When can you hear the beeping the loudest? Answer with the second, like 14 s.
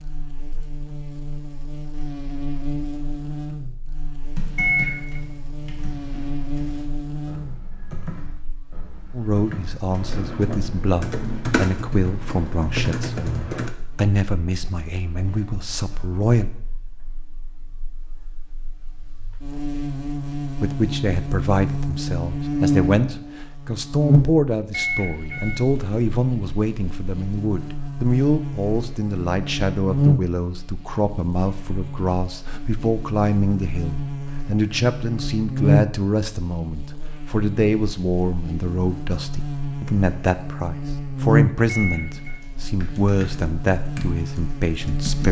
5 s.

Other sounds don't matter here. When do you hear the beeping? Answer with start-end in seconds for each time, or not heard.
4.5-5.2, 24.7-25.6, 41.6-42.4.